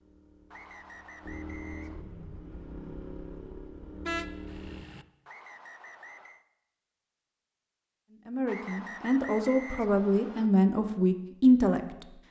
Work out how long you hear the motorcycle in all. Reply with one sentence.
The motorcycle can be heard for 5 seconds in total.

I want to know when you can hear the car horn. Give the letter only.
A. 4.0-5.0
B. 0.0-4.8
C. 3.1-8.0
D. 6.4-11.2
A.